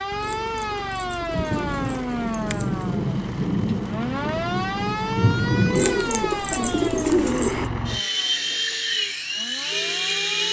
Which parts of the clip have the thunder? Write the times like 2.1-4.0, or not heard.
1.3-6.0.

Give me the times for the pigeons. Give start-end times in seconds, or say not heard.
0.2-2.8, 5.8-7.7.